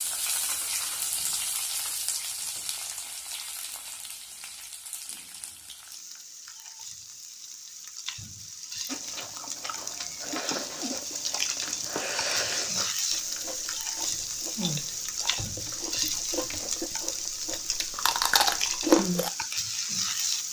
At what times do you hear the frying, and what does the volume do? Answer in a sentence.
You can hear the frying from 0.0 to 20.4 s, getting quieter then louder.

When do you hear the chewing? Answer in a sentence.
The chewing can be heard from 8.8 to 19.3 s.